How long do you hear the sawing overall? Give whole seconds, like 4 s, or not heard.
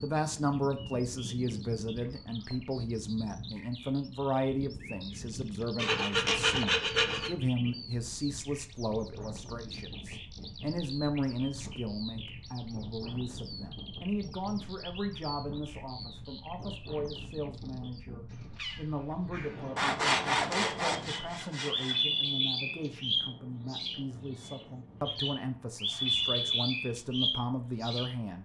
4 s.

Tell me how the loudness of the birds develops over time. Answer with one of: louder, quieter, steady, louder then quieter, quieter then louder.
louder.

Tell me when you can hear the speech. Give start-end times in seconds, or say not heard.
0.0-28.4.